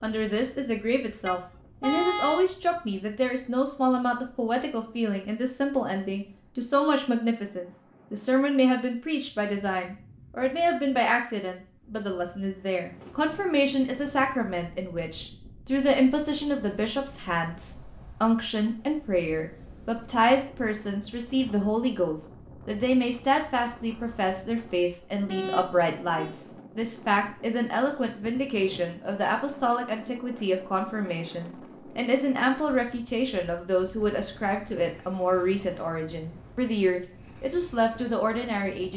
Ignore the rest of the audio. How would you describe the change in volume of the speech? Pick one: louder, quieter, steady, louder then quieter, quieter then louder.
steady.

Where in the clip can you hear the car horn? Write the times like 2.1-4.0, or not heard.
1.2-2.5, 25.2-26.4.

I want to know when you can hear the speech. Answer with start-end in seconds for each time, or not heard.
0.0-38.9.